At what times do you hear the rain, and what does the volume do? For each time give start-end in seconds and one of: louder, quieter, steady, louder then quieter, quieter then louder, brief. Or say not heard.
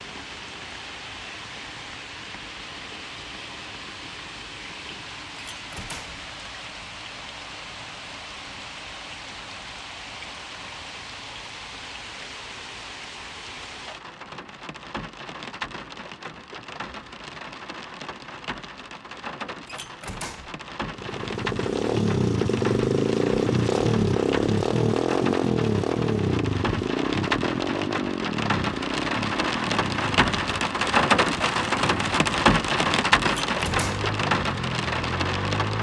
0.0-35.7 louder.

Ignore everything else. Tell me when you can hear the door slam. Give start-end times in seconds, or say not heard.
5.3-6.2, 19.6-20.6, 33.2-34.1.